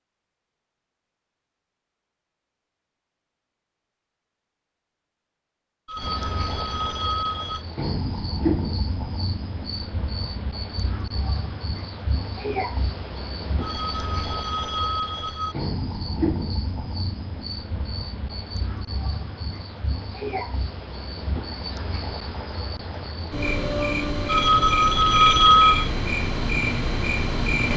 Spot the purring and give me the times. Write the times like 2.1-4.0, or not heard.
not heard.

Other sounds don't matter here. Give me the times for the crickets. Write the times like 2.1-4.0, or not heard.
6.0-27.7.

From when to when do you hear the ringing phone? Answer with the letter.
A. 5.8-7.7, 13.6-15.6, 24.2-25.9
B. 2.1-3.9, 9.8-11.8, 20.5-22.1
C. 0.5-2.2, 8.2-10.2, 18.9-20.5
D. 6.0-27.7
A.